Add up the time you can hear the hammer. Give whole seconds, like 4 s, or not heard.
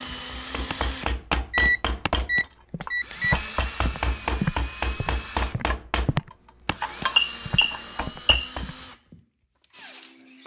8 s.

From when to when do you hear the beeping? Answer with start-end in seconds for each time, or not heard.
1.5-3.4, 6.8-8.5.